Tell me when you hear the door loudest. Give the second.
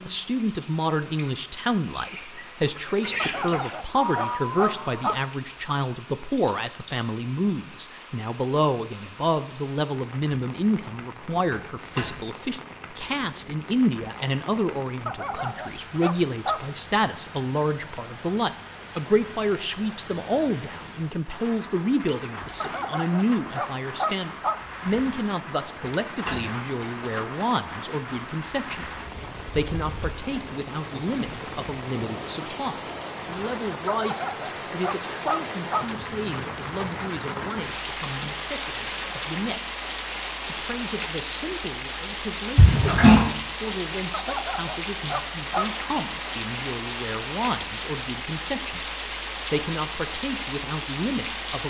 43 s.